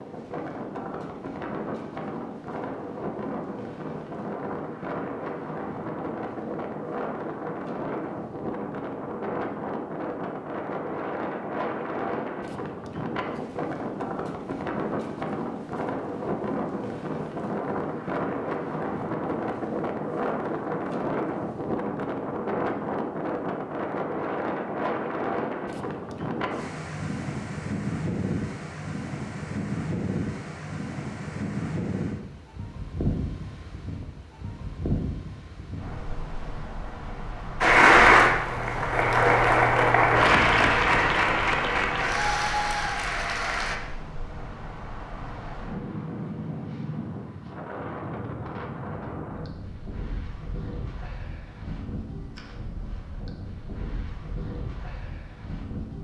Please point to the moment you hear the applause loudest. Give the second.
38 s.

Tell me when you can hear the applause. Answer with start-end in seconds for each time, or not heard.
37.6-43.8.